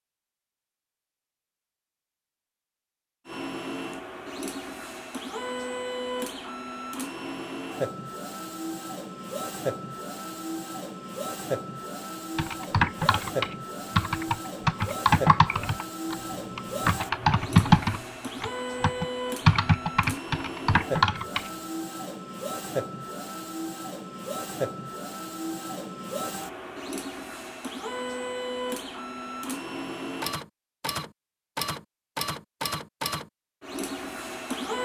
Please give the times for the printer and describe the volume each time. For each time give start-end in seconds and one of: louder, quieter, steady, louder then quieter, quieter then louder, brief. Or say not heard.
3.2-34.7 steady.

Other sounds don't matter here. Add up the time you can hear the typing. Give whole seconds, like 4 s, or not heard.
9 s.